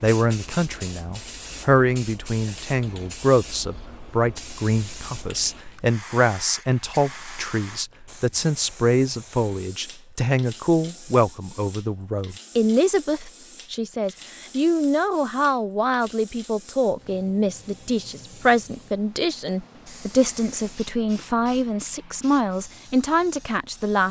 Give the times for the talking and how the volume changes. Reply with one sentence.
You can hear the talking from 0.0 to 24.0 s, at a steady volume.